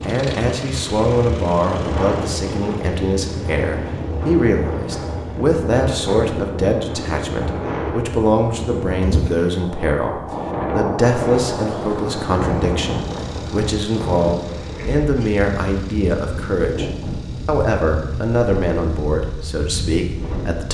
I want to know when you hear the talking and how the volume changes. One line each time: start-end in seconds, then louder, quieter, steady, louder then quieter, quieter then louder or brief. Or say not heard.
0.0-20.7 steady.